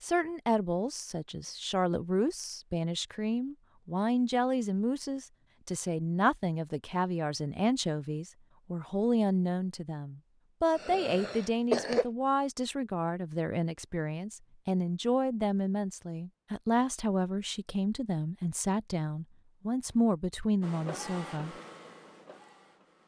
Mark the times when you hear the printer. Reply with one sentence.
The printer can be heard from 20.6 to 23.0 s.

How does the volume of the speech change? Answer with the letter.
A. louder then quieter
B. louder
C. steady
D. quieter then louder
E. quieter
C.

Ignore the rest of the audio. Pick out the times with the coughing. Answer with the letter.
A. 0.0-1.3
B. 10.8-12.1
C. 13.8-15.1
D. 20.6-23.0
B.